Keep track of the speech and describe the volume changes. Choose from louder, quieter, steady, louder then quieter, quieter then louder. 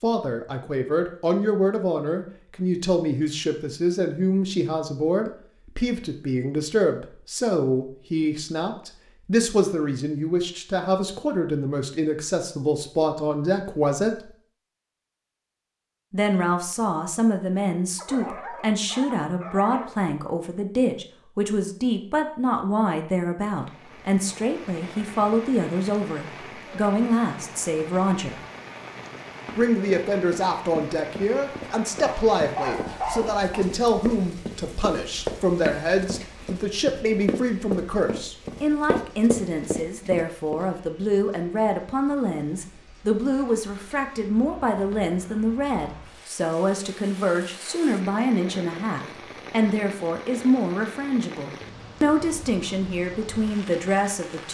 steady.